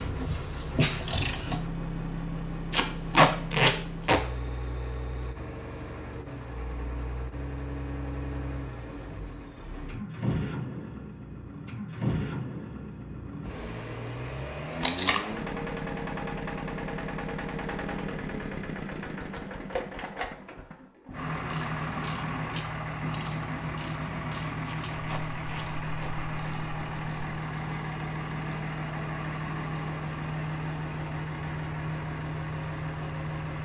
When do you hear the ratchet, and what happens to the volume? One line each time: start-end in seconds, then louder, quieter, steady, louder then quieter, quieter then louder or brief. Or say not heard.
0.0-1.6 brief
21.1-27.4 quieter.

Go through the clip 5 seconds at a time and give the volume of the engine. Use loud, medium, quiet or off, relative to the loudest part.
loud, medium, loud, loud, loud, loud, loud.